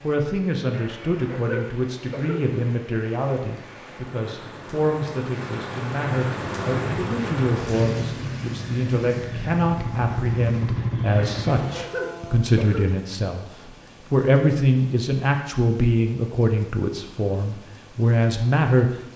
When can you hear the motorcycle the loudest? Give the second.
11 s.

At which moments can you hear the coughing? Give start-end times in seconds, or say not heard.
0.7-2.5, 11.2-12.9.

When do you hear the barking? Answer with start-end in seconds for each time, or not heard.
not heard.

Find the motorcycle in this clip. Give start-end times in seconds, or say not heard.
6.3-11.8.